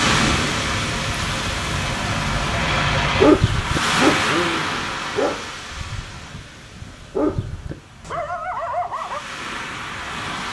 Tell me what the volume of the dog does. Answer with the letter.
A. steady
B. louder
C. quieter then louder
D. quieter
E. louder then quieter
C.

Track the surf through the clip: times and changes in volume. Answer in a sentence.
The surf can be heard from 0.0 to 10.4 s, getting quieter then louder.